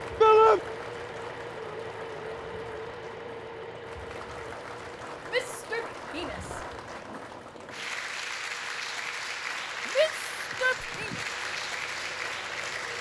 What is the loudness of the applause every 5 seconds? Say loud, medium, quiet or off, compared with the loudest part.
medium, loud, loud.